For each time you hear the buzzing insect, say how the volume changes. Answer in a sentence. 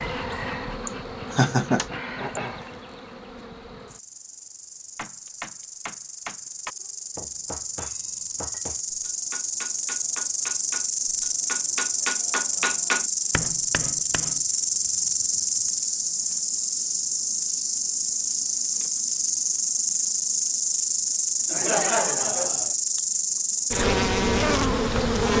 The buzzing insect can be heard from 0.0 to 25.3 s, getting louder.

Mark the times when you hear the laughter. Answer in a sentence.
The laughter can be heard from 0.8 to 2.4 s and from 21.4 to 22.8 s.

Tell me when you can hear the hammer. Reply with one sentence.
The hammer can be heard from 5.0 to 14.4 s.